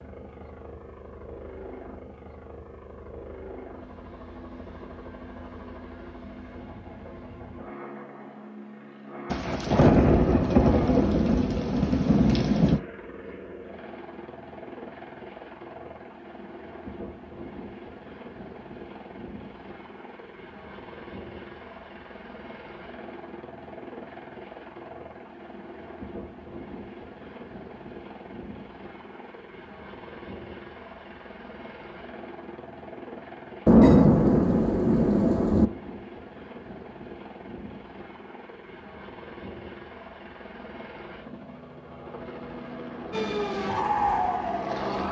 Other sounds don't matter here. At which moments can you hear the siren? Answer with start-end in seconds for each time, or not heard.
43.1-45.0.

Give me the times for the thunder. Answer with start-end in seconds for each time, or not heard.
9.3-12.8, 33.6-35.6.